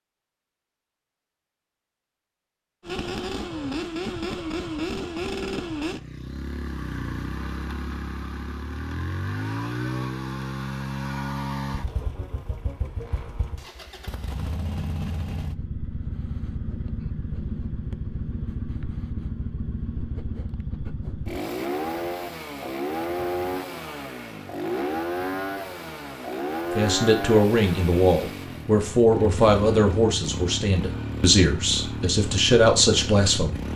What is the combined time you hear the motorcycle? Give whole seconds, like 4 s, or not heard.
31 s.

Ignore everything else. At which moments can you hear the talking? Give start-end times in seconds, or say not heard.
26.8-33.6.